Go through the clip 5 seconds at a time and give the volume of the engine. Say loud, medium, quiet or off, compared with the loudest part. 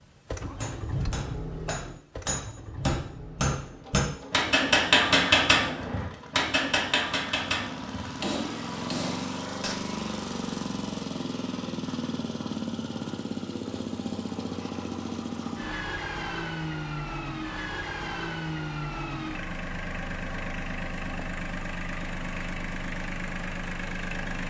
medium, loud, loud, loud, loud.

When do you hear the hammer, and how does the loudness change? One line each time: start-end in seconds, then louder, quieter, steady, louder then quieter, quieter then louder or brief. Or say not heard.
0.6-9.8 louder then quieter.